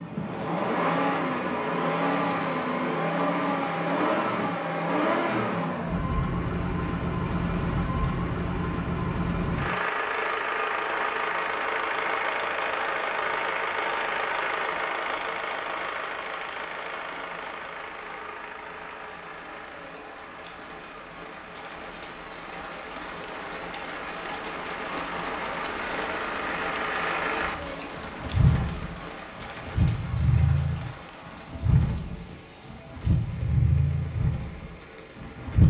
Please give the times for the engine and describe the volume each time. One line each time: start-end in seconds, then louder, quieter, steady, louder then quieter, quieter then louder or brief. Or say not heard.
0.0-35.6 quieter then louder.